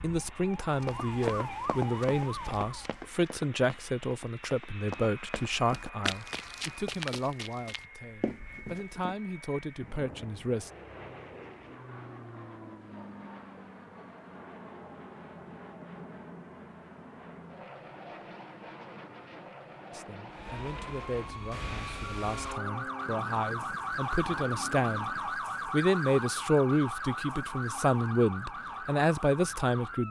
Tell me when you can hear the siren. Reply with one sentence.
The siren can be heard from 0.0 to 3.0 s and from 20.2 to 30.0 s.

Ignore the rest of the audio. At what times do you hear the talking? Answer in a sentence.
You can hear the talking from 0.0 to 10.7 s and from 19.9 to 30.0 s.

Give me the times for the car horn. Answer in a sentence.
The car horn can't be heard in this clip.